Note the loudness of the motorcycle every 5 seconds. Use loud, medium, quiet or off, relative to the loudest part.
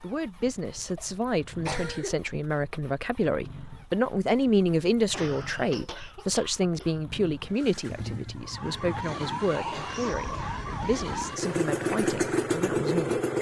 quiet, quiet, loud.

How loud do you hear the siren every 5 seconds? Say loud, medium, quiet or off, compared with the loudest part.
off, loud, loud.